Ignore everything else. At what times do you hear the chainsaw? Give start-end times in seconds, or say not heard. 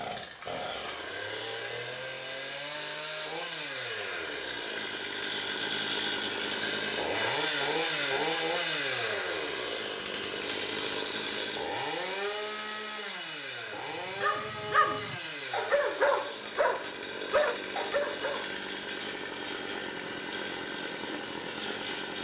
0.0-22.2.